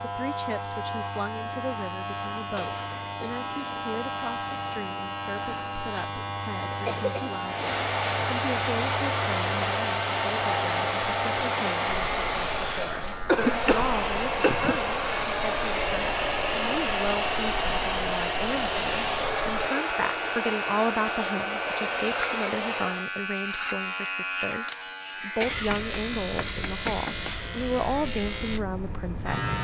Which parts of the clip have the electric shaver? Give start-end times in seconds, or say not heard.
0.0-29.5.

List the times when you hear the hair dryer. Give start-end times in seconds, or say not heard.
7.5-23.1.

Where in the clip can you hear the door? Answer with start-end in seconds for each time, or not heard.
not heard.